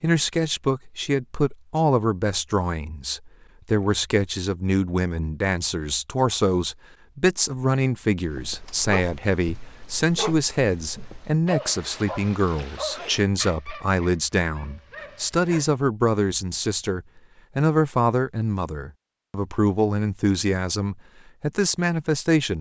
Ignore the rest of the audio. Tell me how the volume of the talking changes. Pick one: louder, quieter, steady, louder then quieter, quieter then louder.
steady.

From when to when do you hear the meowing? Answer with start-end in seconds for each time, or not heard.
not heard.